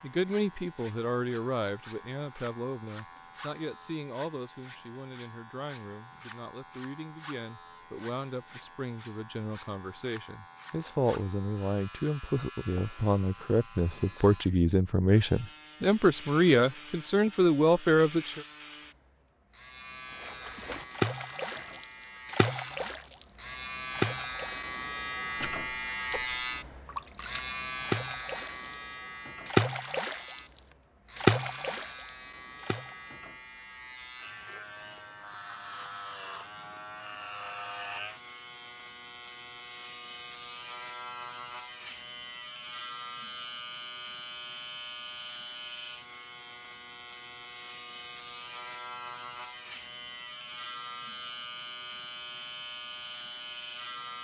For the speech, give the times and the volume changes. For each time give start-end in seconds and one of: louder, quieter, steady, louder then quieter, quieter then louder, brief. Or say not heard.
0.0-18.4 quieter then louder.